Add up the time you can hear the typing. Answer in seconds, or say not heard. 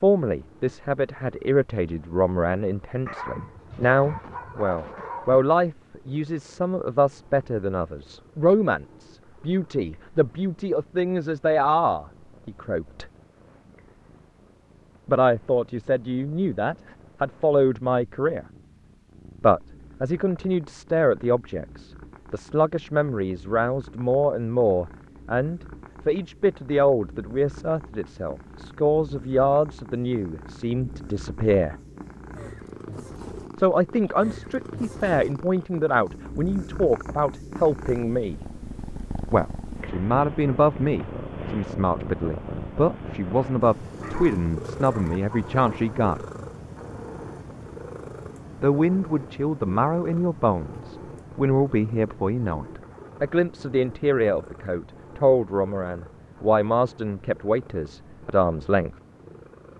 not heard.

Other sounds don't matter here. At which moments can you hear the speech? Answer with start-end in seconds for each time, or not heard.
0.0-13.1, 15.1-18.4, 19.4-31.8, 33.5-38.4, 39.3-46.2, 48.6-59.0.